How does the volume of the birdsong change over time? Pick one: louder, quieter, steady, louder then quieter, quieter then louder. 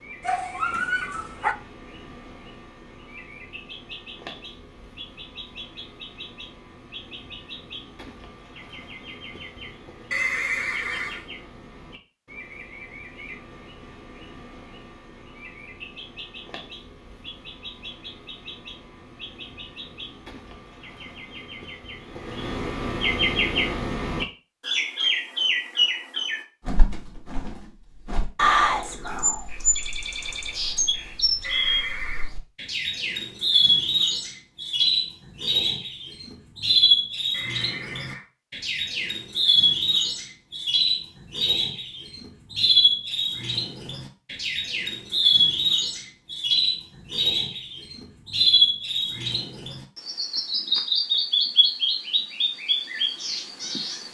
louder.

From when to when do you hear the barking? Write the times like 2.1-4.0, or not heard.
0.2-1.6.